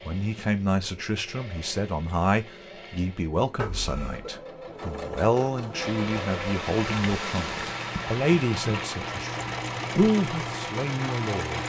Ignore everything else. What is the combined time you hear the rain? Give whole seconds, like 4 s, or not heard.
6 s.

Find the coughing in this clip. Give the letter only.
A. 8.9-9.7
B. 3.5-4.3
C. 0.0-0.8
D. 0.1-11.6
B.